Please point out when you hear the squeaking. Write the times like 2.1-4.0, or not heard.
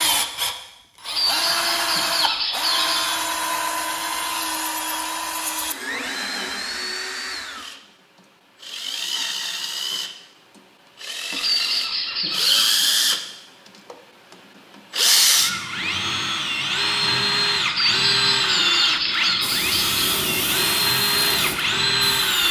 1.1-3.1, 11.3-12.8, 17.6-20.2.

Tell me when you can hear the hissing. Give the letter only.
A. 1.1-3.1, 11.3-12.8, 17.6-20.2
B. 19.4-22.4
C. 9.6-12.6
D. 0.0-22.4
B.